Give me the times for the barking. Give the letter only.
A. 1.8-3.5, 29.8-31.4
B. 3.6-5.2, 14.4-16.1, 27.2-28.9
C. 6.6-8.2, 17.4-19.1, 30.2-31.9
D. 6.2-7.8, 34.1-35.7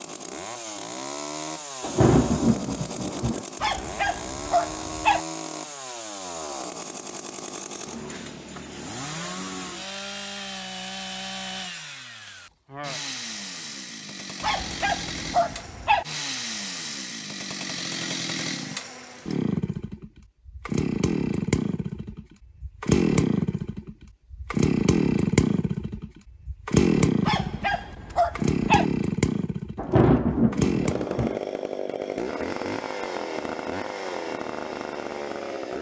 B.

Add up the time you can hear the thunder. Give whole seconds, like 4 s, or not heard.
3 s.